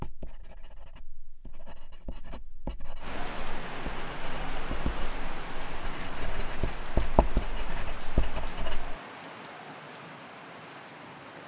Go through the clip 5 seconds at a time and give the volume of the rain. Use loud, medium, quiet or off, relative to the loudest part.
loud, loud, medium.